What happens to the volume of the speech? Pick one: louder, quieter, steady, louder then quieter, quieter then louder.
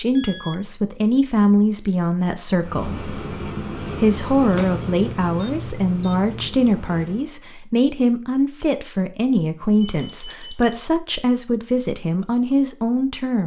steady.